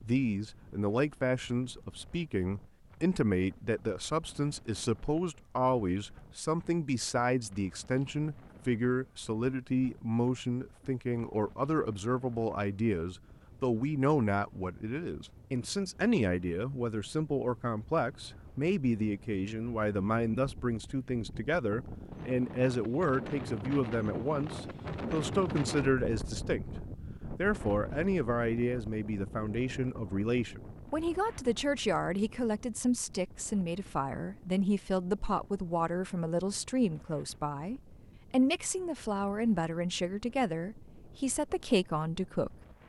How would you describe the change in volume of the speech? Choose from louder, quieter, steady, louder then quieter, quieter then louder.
steady.